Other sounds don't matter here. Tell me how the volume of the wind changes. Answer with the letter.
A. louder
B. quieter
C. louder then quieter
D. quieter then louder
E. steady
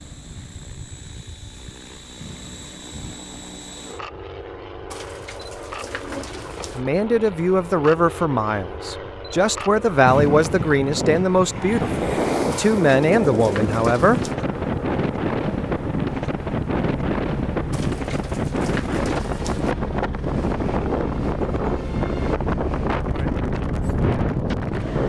E.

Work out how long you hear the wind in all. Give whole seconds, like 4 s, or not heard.
15 s.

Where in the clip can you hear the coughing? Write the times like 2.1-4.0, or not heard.
not heard.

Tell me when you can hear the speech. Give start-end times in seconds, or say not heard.
6.8-14.2.